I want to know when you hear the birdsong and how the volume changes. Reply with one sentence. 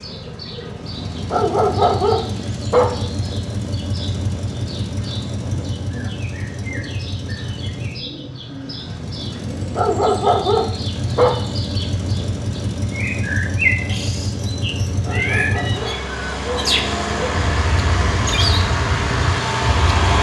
You can hear the birdsong from 0.0 to 20.1 s, getting louder.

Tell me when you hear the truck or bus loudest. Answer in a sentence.
The loudest moment of the truck or bus is at 20 seconds.